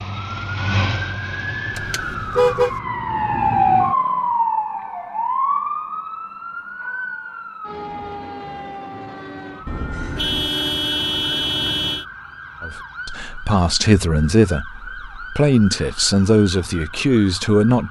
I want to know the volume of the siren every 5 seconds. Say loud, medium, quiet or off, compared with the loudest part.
loud, medium, quiet, quiet.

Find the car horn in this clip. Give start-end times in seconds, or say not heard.
1.7-2.8, 9.7-12.1.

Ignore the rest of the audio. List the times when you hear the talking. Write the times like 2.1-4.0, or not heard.
12.6-17.8.